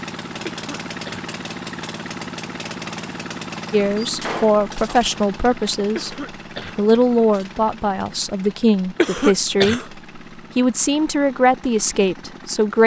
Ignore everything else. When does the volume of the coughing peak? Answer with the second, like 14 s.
9 s.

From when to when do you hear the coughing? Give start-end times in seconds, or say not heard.
0.5-1.3, 6.0-6.8, 8.9-9.8.